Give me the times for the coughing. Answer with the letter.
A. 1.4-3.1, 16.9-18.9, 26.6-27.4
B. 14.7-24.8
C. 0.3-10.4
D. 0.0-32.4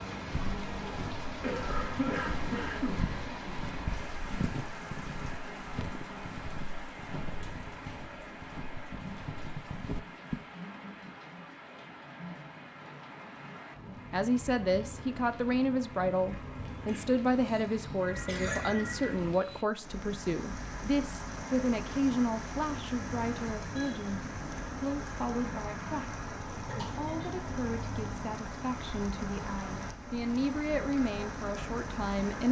A.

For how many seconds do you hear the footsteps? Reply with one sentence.
The footsteps can be heard for 10 seconds in total.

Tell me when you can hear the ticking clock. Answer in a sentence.
The ticking clock can't be heard in this clip.